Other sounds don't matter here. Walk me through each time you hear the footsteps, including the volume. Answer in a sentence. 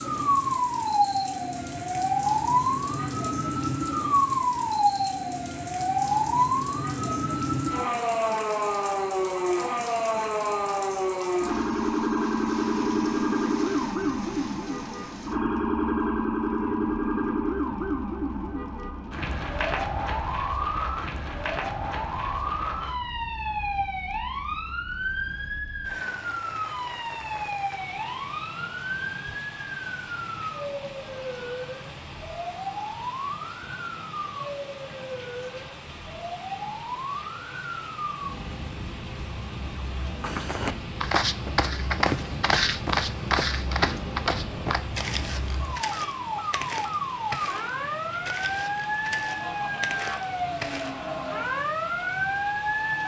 You can hear the footsteps from 40.2 to 51.0 s, getting quieter.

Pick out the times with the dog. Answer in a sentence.
You can't hear the dog here.